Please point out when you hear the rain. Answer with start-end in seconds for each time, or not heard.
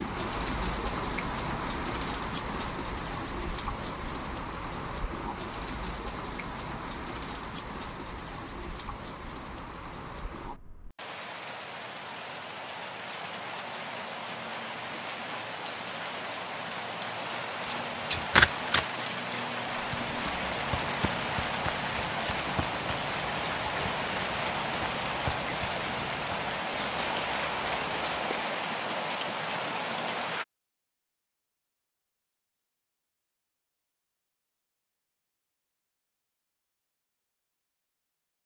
0.0-30.4.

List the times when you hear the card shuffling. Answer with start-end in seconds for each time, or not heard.
17.6-18.9.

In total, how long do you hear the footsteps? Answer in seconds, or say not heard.
9 s.